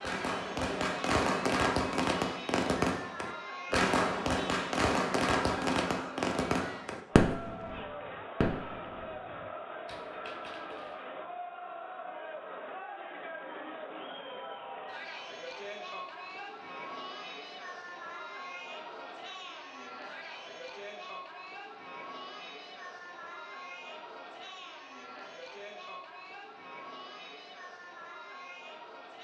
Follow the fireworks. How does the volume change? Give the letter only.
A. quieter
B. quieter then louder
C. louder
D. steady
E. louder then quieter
A.